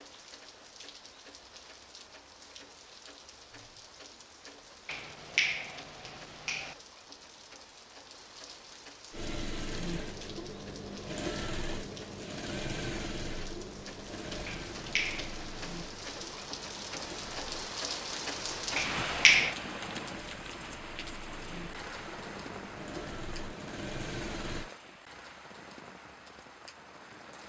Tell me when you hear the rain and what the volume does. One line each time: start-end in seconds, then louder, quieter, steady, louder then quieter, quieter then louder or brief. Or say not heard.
0.0-27.4 louder then quieter.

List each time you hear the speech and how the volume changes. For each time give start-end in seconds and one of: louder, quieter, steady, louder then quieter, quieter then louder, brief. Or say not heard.
not heard.